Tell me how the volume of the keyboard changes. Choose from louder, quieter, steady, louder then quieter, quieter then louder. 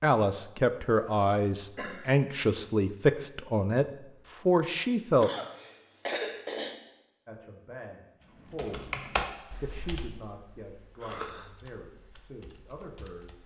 quieter then louder.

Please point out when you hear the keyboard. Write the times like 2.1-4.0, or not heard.
8.3-13.4.